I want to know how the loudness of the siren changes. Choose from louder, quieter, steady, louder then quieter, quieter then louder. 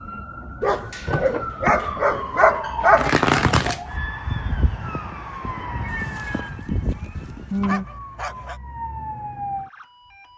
louder then quieter.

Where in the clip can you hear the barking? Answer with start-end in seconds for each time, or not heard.
0.6-3.2, 5.8-8.6.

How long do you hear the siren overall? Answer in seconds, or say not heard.
10 s.